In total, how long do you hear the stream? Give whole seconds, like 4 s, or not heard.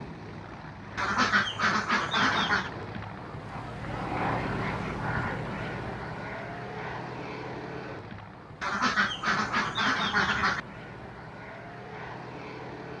not heard.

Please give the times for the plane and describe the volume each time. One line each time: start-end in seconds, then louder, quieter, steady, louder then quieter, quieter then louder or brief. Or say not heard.
0.0-12.9 louder then quieter.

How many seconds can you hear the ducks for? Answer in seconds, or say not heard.
4 s.